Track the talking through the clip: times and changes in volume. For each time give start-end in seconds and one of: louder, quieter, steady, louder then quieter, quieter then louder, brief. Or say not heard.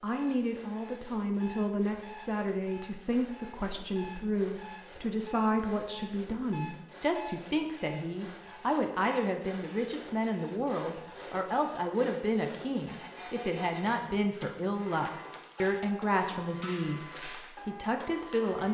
0.0-18.6 steady.